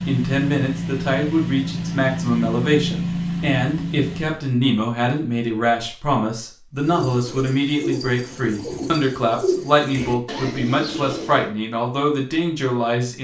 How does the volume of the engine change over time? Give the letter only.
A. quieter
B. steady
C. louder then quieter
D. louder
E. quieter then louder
B.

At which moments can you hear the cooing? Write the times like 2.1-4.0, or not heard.
6.8-11.5.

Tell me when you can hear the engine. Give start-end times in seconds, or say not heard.
0.0-4.4.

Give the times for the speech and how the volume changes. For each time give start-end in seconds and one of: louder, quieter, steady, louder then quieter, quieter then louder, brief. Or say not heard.
0.1-13.1 steady.